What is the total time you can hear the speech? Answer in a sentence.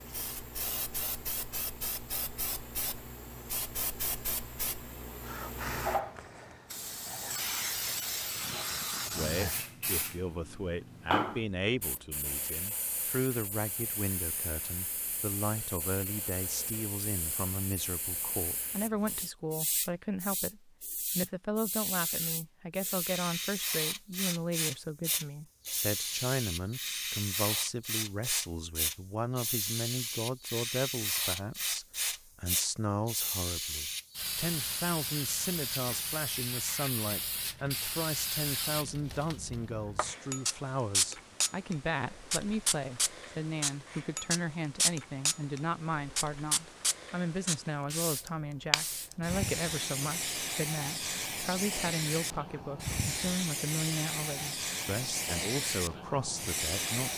The speech can be heard for 48 seconds in total.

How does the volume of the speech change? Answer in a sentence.
The loudness of the speech stays about the same.